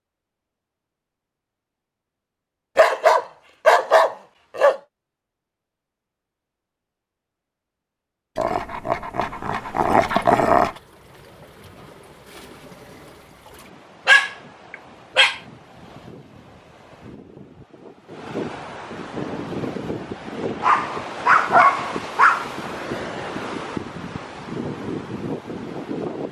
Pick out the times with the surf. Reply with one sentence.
The surf can be heard from 9.2 to 26.2 s.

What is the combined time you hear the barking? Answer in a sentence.
The barking can be heard for 8 seconds in total.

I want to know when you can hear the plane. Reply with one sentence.
You can't hear the plane here.